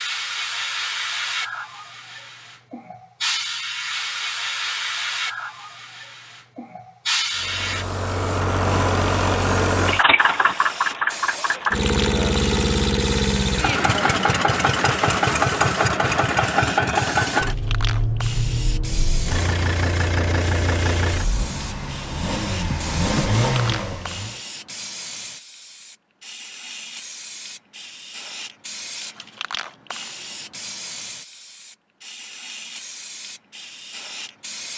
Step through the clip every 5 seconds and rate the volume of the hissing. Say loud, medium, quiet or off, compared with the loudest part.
loud, loud, medium, medium, medium, medium, medium.